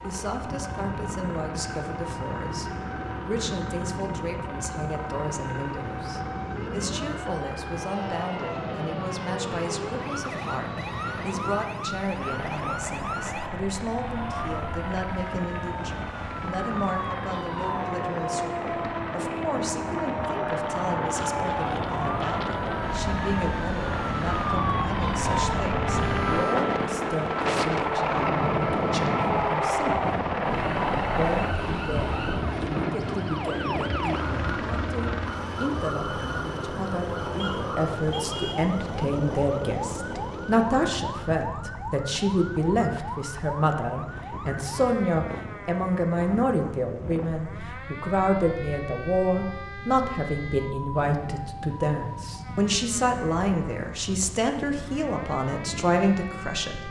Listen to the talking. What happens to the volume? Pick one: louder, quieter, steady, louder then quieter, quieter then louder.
louder.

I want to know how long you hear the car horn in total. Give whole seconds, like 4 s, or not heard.
2 s.